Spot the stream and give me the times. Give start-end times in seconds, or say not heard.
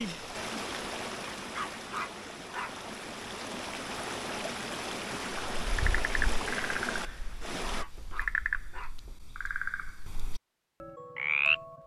0.0-7.8.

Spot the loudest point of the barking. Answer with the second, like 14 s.
2 s.